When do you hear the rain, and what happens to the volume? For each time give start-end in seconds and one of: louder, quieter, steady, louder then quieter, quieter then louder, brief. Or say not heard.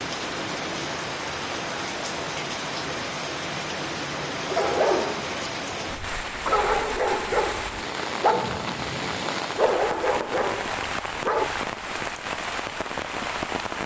0.0-13.8 steady.